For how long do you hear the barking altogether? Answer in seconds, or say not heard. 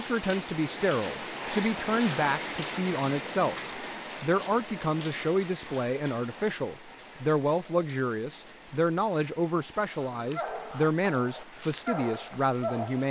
3 s.